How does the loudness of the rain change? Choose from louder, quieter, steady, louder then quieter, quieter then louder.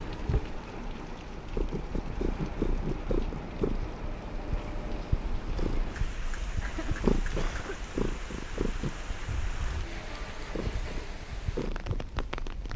steady.